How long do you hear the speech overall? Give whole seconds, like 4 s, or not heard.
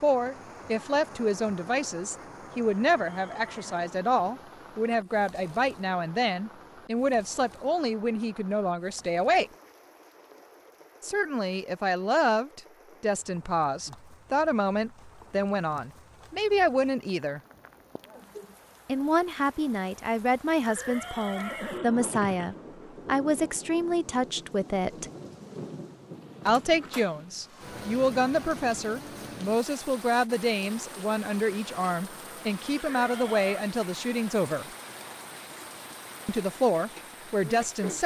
32 s.